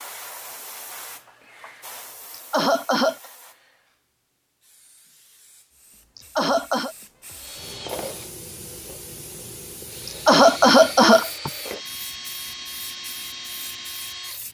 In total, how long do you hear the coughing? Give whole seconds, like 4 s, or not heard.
3 s.